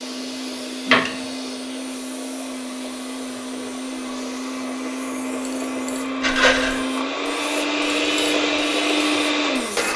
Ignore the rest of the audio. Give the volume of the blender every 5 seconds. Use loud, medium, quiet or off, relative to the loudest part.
medium, loud.